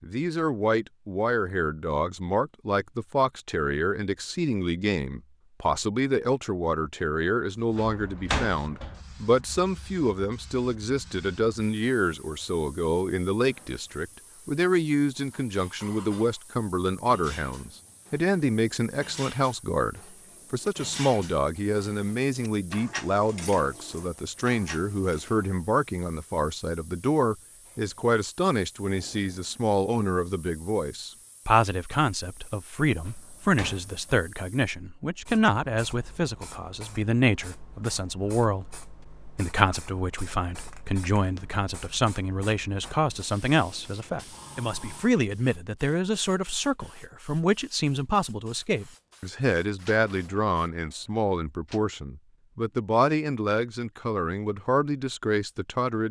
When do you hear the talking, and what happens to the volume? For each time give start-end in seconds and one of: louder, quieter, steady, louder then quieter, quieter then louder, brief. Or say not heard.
0.0-56.0 steady.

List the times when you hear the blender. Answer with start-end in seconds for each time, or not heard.
not heard.